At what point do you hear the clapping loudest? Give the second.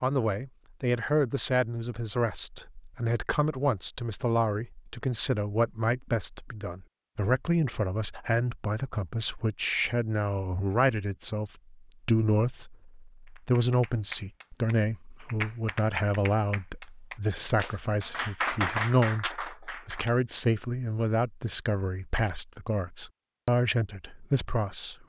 19 s.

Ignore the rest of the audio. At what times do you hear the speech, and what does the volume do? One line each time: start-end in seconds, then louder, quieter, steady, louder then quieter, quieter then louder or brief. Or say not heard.
0.0-24.9 steady.